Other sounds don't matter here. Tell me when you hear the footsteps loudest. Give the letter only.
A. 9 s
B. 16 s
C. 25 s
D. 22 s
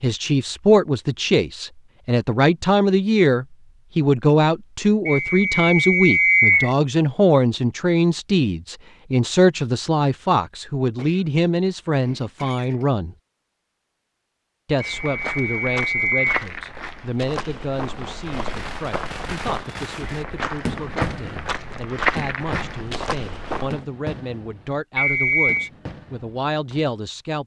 D.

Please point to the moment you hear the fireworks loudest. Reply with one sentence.
The loudest moment of the fireworks is at 21 seconds.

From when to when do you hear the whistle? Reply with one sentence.
The whistle can be heard from 5.0 to 6.7 s, from 14.8 to 16.4 s and from 24.9 to 25.7 s.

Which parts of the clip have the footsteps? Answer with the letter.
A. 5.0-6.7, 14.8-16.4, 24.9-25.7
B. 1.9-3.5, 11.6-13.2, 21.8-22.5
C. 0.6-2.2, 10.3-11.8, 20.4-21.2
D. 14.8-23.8
D.